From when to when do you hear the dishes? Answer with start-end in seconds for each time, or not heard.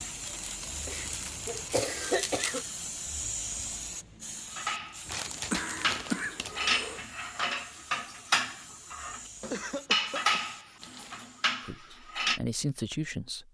4.5-12.4.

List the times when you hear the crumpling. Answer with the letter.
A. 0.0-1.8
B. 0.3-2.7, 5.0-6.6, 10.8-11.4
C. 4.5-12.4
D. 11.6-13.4
B.